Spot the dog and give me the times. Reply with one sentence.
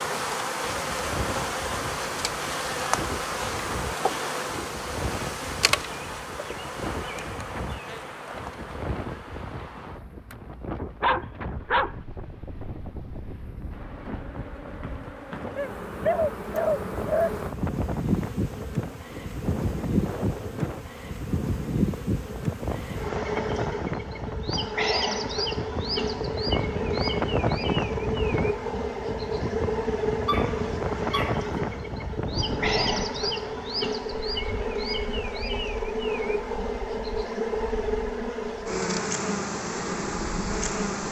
The dog can be heard from 11.0 to 11.9 s, from 15.6 to 17.3 s and from 30.2 to 31.5 s.